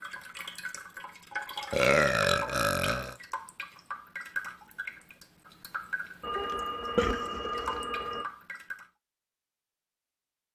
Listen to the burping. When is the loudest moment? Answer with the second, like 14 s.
2 s.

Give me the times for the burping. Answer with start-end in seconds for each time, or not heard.
1.7-3.1, 6.3-7.8.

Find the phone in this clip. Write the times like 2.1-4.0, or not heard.
6.2-8.2.